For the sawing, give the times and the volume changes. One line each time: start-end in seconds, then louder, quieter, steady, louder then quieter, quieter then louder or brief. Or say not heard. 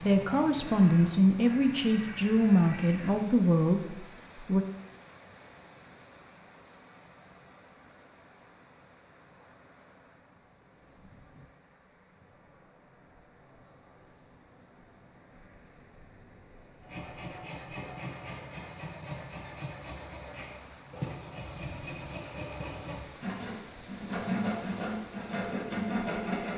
16.8-26.5 louder.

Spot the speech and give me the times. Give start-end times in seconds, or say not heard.
0.0-4.7.